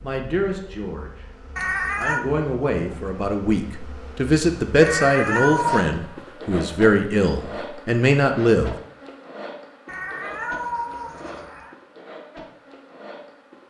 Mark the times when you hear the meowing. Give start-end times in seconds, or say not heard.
1.6-2.2, 4.8-5.9, 9.8-11.8.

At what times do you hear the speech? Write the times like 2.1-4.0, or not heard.
0.0-1.2, 1.9-8.8.